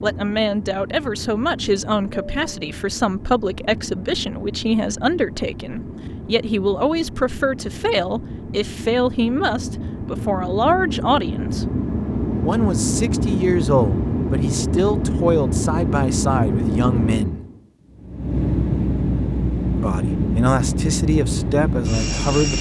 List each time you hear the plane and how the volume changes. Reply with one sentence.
You can hear the plane from 0.0 to 22.5 s, getting louder.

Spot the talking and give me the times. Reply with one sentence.
The talking can be heard from 0.0 to 11.7 s, from 12.4 to 17.4 s and from 19.8 to 22.5 s.